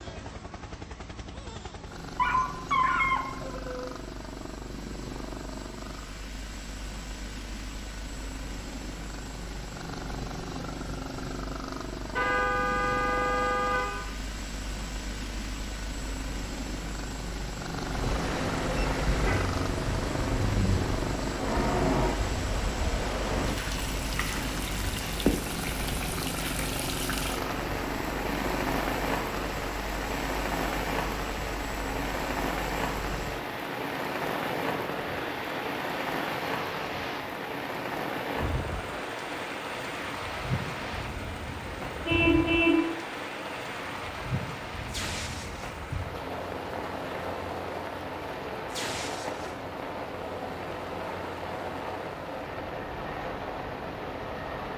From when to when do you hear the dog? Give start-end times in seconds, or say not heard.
2.1-3.9.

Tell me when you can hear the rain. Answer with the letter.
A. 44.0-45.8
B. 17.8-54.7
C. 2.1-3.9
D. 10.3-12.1
B.